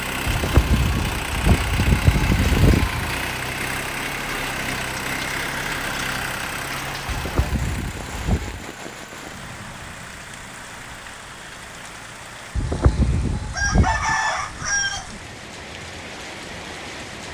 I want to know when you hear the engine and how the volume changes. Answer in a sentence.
The engine can be heard from 0.0 to 12.6 s, getting quieter.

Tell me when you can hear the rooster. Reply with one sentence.
The rooster can be heard from 13.5 to 15.1 s.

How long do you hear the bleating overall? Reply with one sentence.
You can hear the bleating for 6 seconds altogether.